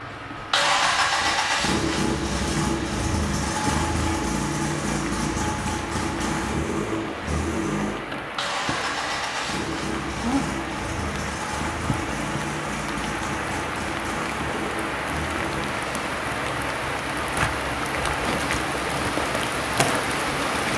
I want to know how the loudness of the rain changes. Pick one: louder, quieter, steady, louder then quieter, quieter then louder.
louder.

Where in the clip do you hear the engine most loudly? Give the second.
1 s.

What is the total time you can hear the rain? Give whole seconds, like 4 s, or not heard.
21 s.